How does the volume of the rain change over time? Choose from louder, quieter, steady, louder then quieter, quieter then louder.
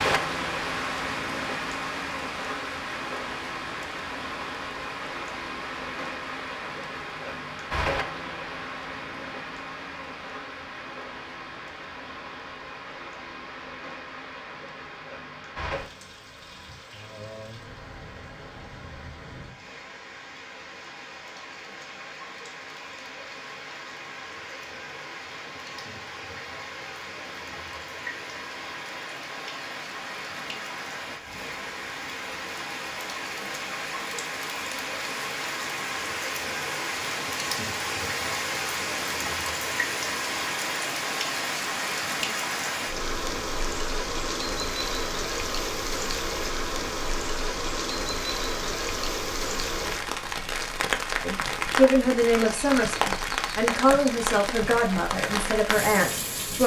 quieter then louder.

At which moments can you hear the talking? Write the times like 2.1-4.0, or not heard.
51.2-56.6.